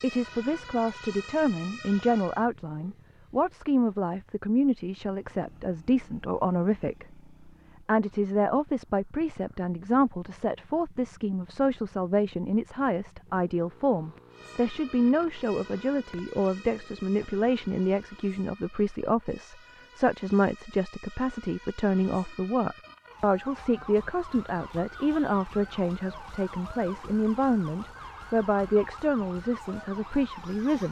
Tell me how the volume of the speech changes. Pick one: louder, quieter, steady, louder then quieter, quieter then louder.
steady.